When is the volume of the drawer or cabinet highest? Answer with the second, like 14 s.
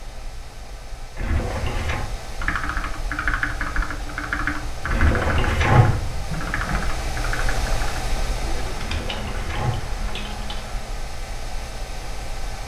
6 s.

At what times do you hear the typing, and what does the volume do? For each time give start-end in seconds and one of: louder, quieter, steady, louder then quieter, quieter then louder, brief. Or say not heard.
2.4-10.8 quieter.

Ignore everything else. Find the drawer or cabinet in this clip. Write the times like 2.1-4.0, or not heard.
1.1-2.0, 4.8-6.8, 8.8-9.9.